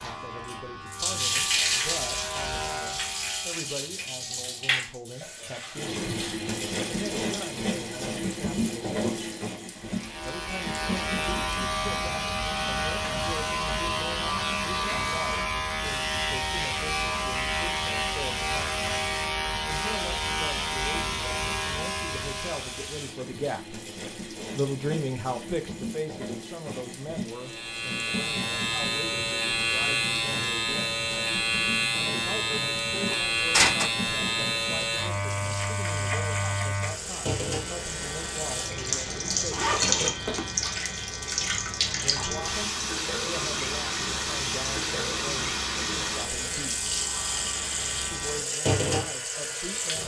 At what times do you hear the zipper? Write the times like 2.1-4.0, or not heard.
38.9-40.5.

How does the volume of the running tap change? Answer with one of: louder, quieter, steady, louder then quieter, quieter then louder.
quieter then louder.